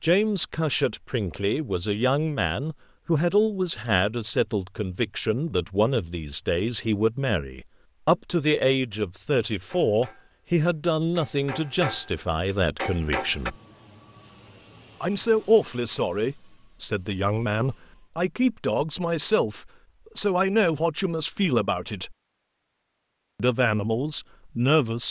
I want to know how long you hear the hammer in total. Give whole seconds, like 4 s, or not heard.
4 s.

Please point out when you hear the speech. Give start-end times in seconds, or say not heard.
0.0-13.6, 15.0-22.1, 23.4-25.0.